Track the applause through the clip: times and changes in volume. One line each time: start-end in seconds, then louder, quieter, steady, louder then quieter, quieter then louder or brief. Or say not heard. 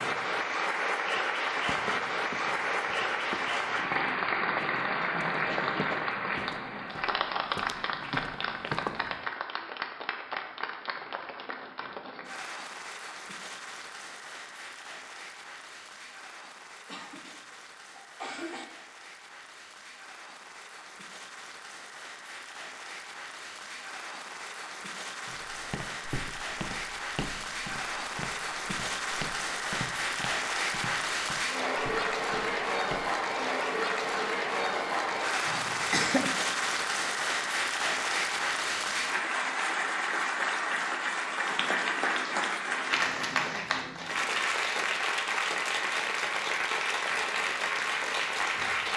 0.0-48.9 quieter then louder.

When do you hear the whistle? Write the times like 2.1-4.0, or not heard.
not heard.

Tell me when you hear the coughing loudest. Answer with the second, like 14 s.
36 s.